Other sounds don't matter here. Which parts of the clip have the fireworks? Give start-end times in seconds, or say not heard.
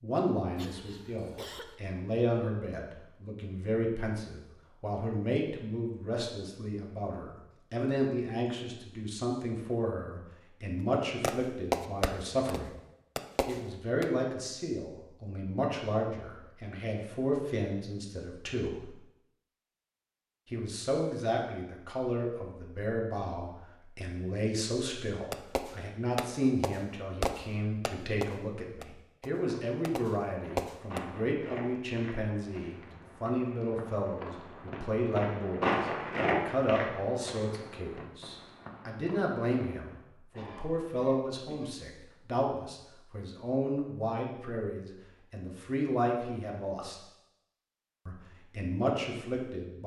11.2-14.1, 25.3-31.0.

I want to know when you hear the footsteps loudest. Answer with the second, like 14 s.
36 s.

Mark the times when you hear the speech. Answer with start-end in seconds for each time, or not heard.
0.0-12.7, 13.4-18.9, 20.5-47.0, 48.0-49.8.